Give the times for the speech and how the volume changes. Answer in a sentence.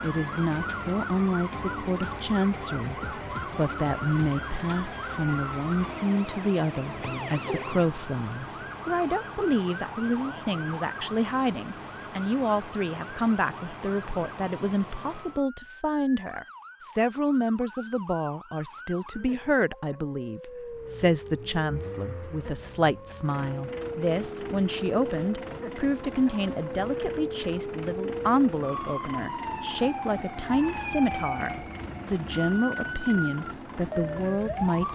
The speech can be heard from 0.0 to 34.8 s, at a steady volume.